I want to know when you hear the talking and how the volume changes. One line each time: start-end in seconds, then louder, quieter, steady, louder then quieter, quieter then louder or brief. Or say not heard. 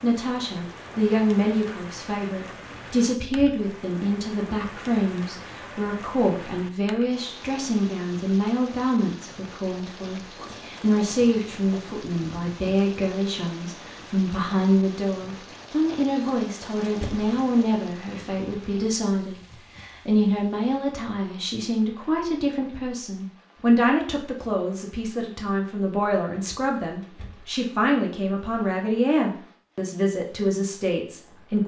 0.0-31.6 steady.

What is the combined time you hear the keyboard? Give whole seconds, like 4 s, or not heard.
not heard.